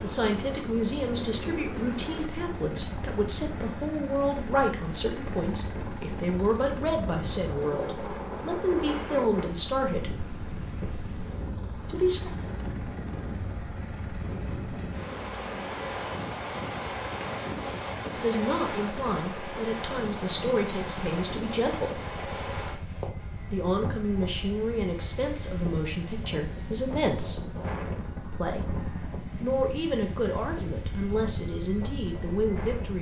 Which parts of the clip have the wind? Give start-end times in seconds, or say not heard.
0.1-32.9.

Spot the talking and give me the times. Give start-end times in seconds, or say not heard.
0.0-10.2, 11.8-12.3, 18.1-22.0, 23.5-27.6, 28.3-32.9.